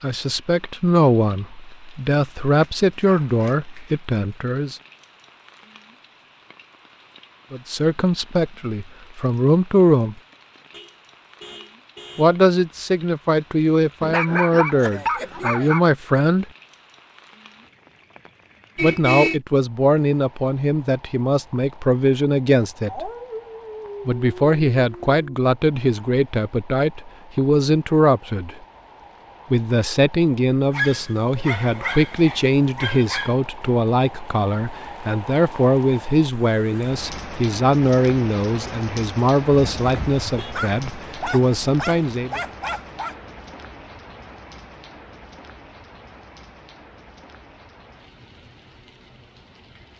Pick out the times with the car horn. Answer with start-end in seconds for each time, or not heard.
10.7-12.4, 18.8-19.4, 39.5-40.6.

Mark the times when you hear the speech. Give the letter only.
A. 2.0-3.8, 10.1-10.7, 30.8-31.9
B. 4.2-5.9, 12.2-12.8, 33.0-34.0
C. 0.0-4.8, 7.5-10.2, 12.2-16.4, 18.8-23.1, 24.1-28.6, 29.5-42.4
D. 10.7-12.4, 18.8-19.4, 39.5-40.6
C.